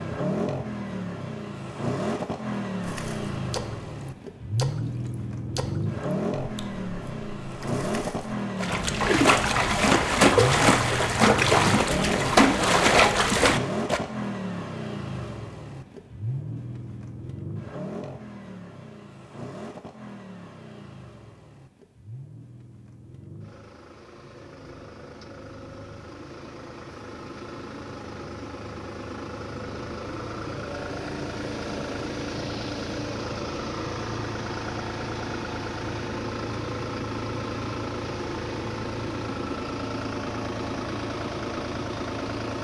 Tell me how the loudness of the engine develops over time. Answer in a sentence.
The loudness of the engine goes down, then up.